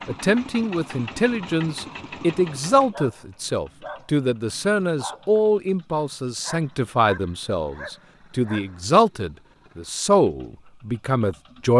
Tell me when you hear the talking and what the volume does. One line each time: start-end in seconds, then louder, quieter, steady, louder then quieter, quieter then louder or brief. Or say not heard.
0.1-11.7 steady.